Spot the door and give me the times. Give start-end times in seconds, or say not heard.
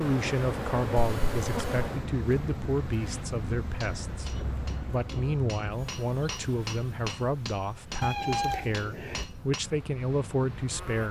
not heard.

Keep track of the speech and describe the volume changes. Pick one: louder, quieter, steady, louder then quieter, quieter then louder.
steady.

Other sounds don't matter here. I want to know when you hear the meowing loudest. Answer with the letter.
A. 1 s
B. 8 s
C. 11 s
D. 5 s
B.